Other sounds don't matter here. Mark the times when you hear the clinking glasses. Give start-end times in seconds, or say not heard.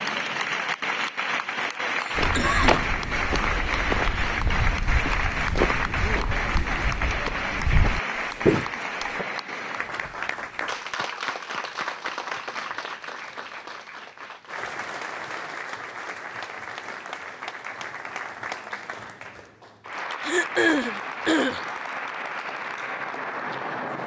not heard.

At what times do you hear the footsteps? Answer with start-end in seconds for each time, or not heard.
2.1-9.2.